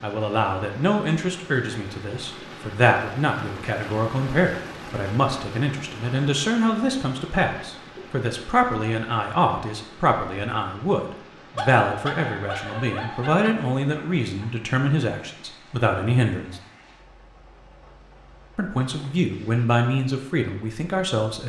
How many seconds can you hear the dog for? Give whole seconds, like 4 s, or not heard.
3 s.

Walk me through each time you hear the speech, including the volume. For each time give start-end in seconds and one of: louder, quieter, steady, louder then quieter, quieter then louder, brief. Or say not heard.
0.0-16.6 steady
18.6-21.4 brief.